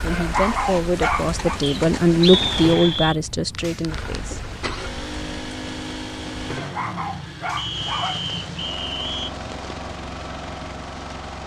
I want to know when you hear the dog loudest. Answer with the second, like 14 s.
1 s.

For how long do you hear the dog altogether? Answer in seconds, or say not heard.
3 s.